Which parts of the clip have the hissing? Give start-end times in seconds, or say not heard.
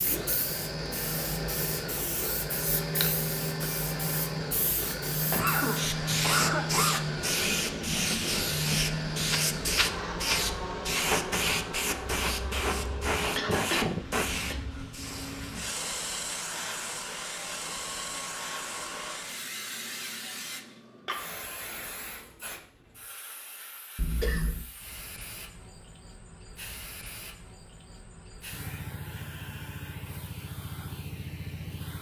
0.0-31.9.